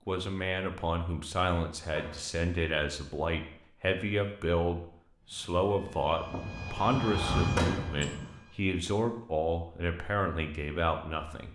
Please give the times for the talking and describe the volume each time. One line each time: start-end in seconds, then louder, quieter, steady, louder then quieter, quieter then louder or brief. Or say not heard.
0.1-11.5 steady.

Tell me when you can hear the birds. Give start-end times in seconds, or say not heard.
not heard.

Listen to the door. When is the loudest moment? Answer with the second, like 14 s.
8 s.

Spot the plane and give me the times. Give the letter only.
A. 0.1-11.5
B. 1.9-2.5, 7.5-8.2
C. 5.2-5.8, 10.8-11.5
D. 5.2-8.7
D.